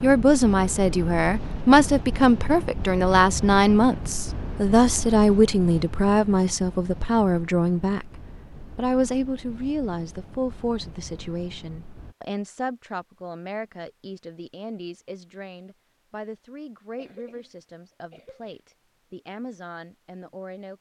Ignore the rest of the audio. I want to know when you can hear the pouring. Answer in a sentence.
You can't hear the pouring here.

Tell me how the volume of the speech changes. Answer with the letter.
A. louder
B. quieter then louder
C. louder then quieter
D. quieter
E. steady
D.